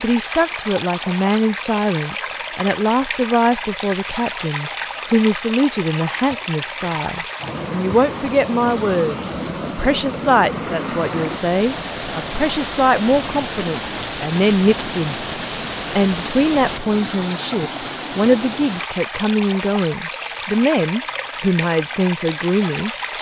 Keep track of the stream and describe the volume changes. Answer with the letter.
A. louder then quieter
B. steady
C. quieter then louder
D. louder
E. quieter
B.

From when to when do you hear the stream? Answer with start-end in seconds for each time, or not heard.
0.0-23.1.